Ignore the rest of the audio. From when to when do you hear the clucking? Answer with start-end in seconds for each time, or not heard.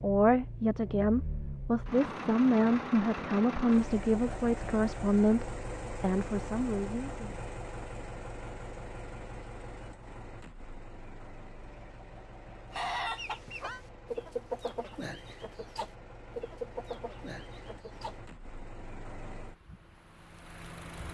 12.7-18.2.